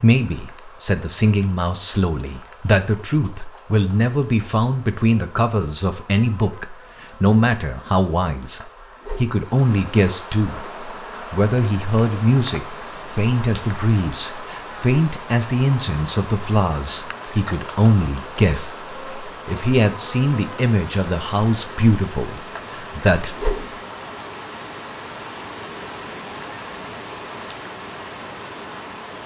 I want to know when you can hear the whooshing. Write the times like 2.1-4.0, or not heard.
8.8-9.4, 23.2-23.6.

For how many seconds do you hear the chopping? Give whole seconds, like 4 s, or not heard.
not heard.